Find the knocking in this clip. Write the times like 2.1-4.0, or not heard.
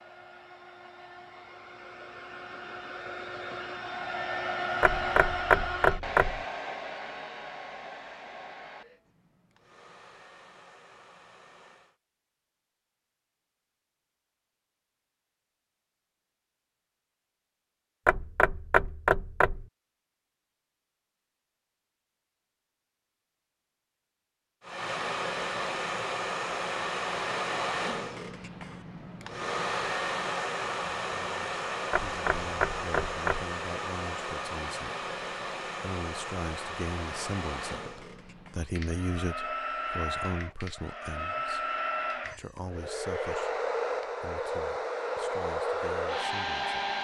4.8-6.4, 18.1-19.6, 31.9-33.5.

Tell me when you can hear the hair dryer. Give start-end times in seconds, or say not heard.
0.0-11.9, 24.6-46.9.